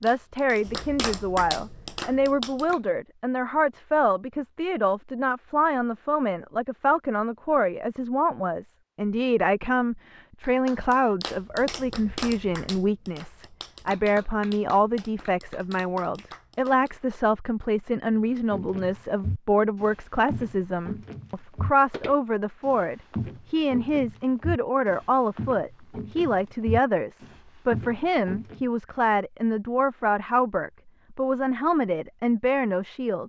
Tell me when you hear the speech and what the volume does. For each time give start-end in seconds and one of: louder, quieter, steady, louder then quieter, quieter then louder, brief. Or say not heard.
0.0-33.2 steady.